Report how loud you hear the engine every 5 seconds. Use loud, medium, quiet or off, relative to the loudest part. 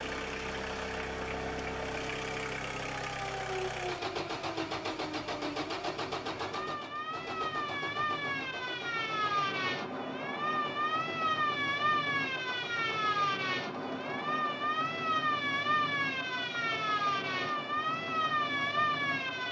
loud, loud, medium, medium.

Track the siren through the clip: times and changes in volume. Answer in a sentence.
The siren can be heard from 0.1 to 19.4 s, getting louder.